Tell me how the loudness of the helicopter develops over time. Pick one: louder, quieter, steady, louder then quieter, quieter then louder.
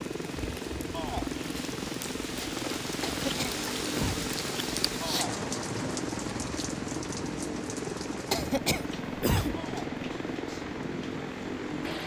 steady.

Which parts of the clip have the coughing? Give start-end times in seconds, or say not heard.
3.0-4.3, 8.3-9.6.